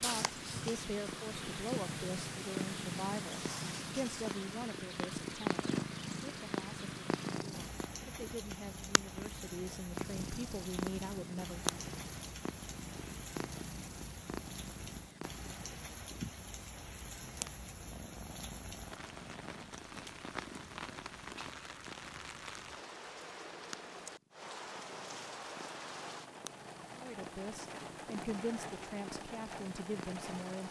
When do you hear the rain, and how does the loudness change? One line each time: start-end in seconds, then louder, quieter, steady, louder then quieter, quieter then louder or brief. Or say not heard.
0.0-30.6 steady.